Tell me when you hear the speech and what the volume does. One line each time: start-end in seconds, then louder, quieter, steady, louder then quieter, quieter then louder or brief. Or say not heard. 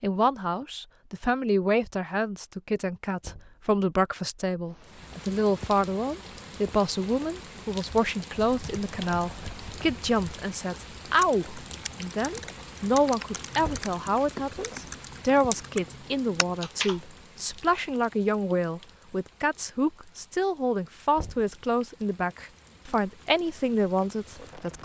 0.0-24.8 steady.